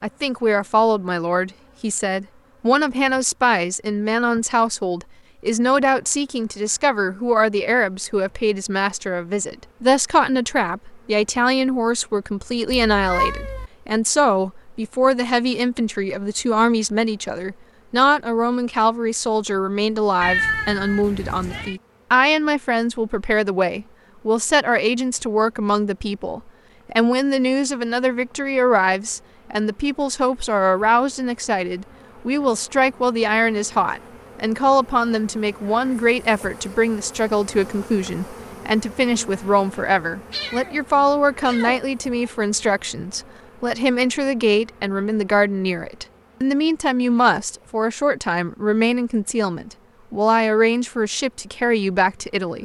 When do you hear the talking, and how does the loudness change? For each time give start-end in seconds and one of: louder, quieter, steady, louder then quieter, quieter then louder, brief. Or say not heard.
0.0-52.5 steady.